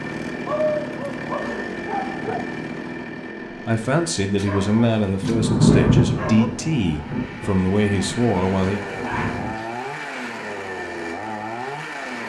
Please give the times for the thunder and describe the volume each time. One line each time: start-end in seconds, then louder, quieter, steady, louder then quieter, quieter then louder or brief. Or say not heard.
5.2-9.5 quieter.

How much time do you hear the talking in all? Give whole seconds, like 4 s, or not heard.
5 s.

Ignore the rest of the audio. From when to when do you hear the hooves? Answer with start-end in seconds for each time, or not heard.
not heard.